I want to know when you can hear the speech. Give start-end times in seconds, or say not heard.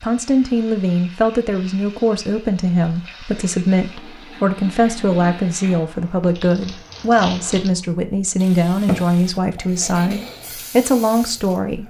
0.0-11.8.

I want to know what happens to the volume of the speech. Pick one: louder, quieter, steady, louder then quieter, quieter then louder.
steady.